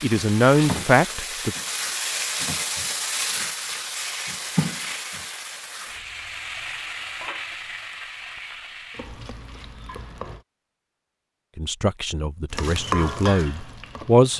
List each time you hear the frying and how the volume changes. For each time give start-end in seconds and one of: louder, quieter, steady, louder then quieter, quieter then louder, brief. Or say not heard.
0.0-10.4 quieter
12.5-14.3 brief.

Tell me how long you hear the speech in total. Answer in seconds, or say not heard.
4 s.